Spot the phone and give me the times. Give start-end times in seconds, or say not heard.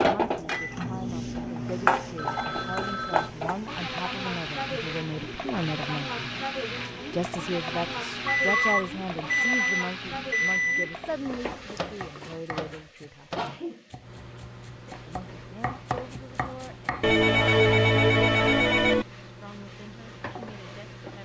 2.1-3.3, 8.4-9.6, 17.0-19.1.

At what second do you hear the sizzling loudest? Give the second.
2 s.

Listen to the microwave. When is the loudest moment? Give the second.
9 s.